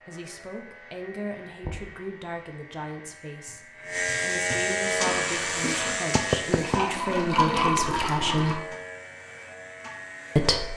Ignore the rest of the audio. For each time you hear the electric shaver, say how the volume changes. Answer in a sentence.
You can hear the electric shaver from 0.0 to 10.7 s, getting louder then quieter.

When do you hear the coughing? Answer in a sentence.
The coughing can be heard from 5.0 to 6.0 s.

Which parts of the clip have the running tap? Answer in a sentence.
The running tap can be heard from 5.0 to 8.6 s.